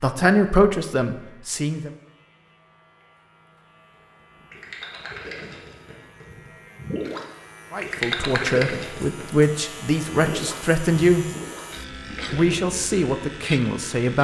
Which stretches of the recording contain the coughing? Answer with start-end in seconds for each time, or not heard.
not heard.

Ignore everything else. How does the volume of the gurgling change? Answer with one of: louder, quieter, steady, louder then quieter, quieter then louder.
louder then quieter.